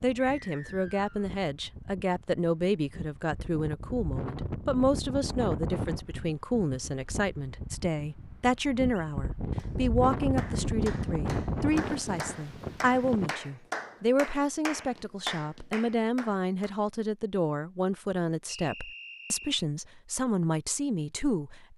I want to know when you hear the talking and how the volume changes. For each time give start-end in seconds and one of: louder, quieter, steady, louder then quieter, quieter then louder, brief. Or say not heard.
0.0-21.7 steady.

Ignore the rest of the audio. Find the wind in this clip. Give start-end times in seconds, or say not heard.
0.0-13.3.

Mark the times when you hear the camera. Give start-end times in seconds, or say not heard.
not heard.